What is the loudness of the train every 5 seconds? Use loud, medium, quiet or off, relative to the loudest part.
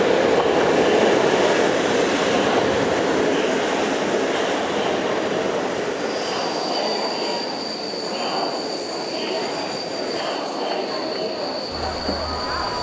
loud, medium, quiet.